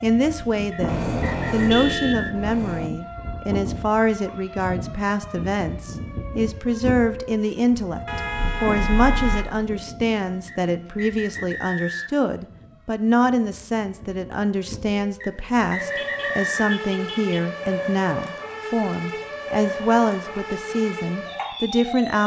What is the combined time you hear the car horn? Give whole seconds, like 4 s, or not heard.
5 s.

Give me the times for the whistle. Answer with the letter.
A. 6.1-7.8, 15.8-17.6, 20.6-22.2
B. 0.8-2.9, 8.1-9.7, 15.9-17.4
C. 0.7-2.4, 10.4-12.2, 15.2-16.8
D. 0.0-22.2
C.